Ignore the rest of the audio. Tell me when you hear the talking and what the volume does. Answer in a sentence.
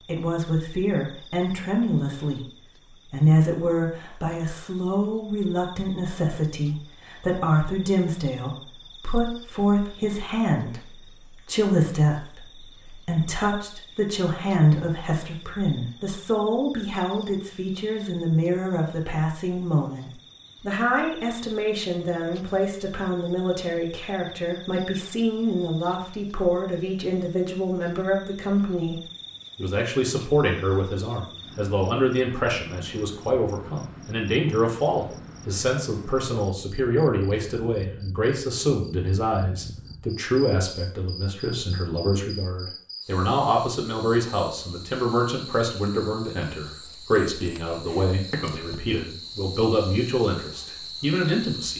The talking can be heard from 0.1 to 51.7 s, at a steady volume.